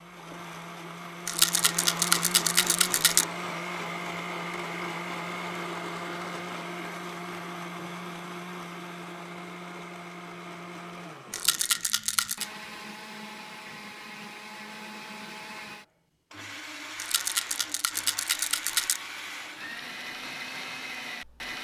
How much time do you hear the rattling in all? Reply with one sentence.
The rattling can be heard for 5 seconds in total.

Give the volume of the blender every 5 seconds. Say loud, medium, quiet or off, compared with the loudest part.
loud, loud, medium, medium, loud.